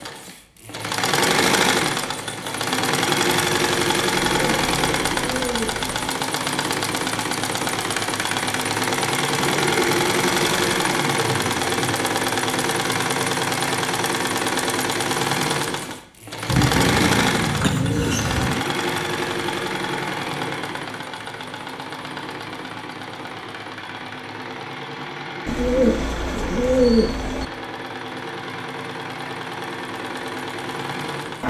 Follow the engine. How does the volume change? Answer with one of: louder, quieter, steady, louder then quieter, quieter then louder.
quieter.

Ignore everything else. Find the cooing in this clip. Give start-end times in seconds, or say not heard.
4.2-5.9, 9.3-12.0, 16.4-18.6, 25.4-27.4.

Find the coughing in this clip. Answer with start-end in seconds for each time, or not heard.
17.6-18.6.